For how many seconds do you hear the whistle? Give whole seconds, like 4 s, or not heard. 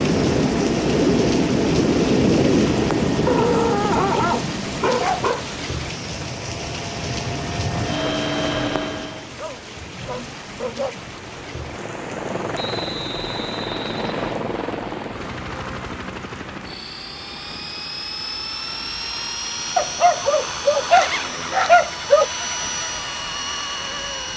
2 s.